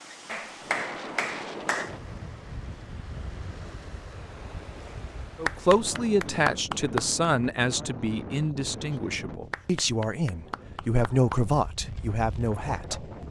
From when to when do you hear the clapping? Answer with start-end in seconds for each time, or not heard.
0.2-1.9, 5.5-7.2, 9.5-11.4.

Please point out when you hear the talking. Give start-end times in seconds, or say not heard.
5.3-13.1.